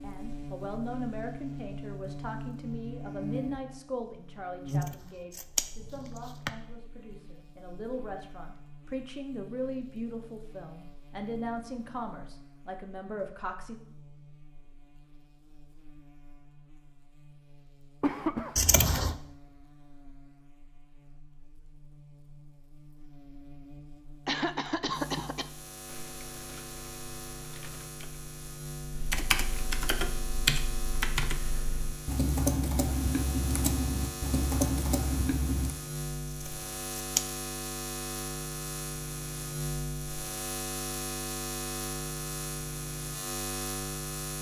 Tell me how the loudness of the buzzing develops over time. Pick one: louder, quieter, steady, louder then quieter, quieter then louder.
quieter then louder.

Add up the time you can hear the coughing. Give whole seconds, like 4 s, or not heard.
2 s.